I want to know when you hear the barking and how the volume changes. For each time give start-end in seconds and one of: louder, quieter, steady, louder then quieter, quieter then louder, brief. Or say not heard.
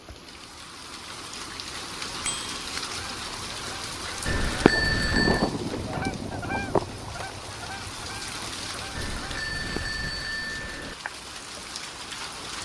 not heard.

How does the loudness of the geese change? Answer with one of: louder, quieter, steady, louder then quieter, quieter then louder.
louder then quieter.